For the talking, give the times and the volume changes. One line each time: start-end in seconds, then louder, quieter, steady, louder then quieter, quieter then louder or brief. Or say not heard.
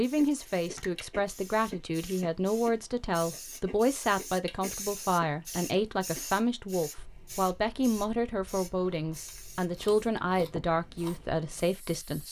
0.0-12.2 steady.